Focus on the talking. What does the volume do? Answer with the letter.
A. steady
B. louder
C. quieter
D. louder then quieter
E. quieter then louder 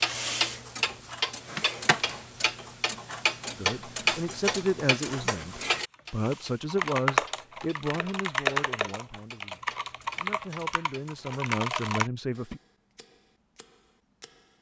E.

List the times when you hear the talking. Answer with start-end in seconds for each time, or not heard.
3.5-12.6.